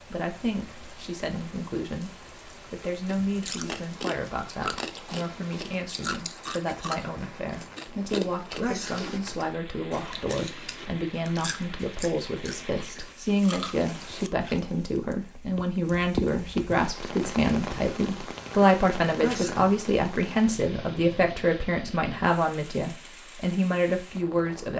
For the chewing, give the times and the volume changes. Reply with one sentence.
You can hear the chewing from 3.0 to 14.6 s, getting quieter.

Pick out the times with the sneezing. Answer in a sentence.
The sneezing can be heard from 8.6 to 9.1 s and from 19.2 to 19.6 s.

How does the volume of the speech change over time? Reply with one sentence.
The loudness of the speech goes up.